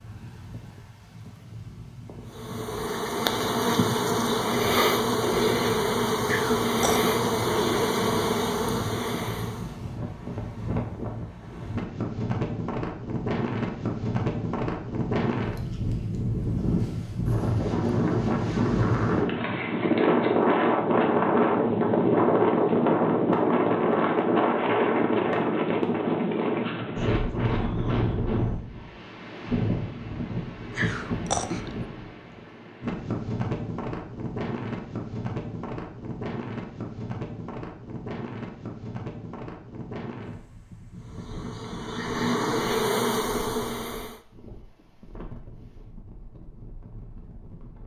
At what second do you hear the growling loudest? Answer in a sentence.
The volume of the growling peaks at 31 seconds.